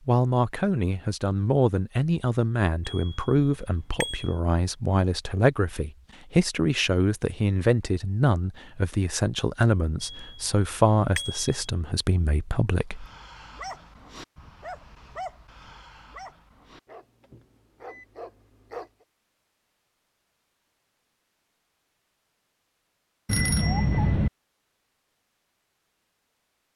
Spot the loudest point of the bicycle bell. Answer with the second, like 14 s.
24 s.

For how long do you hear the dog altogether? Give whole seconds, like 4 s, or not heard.
6 s.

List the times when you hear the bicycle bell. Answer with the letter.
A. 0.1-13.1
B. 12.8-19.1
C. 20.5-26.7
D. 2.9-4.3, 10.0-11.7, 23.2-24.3
D.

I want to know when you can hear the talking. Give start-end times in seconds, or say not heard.
0.1-13.1.